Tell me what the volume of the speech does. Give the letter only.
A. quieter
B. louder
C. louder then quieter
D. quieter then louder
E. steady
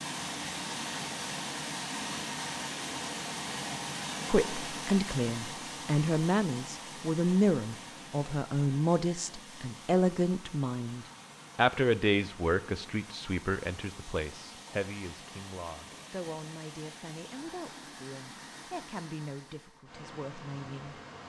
A.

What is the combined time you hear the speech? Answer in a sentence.
The speech can be heard for 17 seconds in total.